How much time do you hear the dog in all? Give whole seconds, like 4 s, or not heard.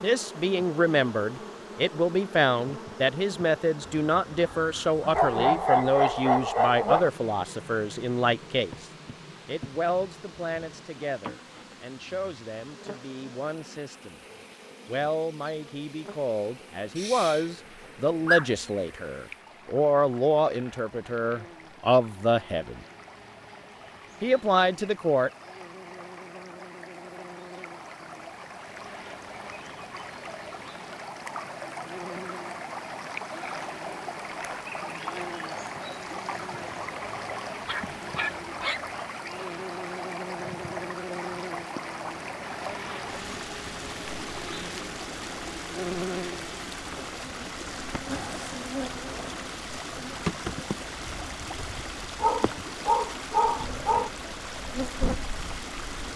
7 s.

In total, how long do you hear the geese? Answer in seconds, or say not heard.
not heard.